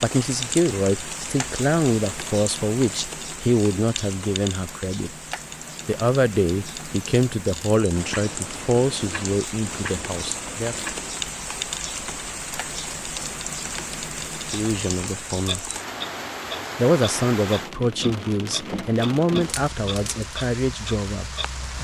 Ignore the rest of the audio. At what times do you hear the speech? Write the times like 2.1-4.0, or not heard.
0.0-5.1, 5.8-10.8, 14.5-15.7, 16.8-21.3.